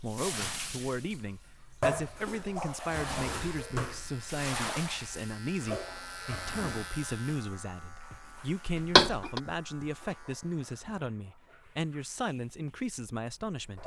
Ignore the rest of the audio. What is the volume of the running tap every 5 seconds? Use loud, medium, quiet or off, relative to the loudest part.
loud, medium, quiet.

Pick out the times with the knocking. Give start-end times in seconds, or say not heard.
8.7-9.4.